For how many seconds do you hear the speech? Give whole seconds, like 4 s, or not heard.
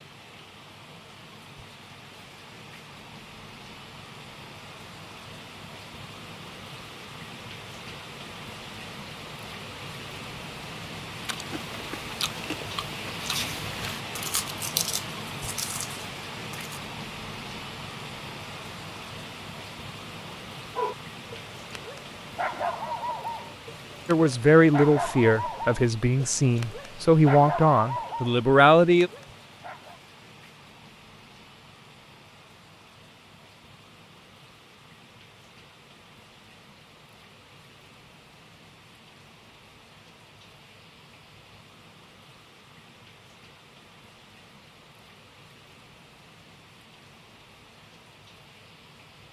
5 s.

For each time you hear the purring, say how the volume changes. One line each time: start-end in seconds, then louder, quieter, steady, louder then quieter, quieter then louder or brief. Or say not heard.
not heard.